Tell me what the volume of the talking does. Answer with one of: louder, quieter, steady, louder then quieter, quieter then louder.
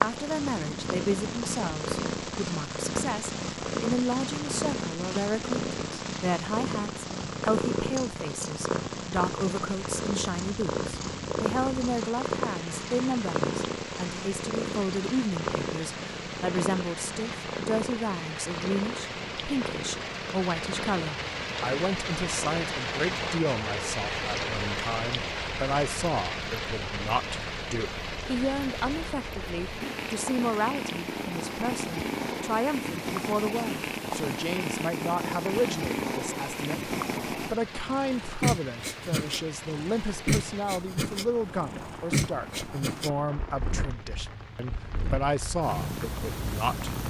steady.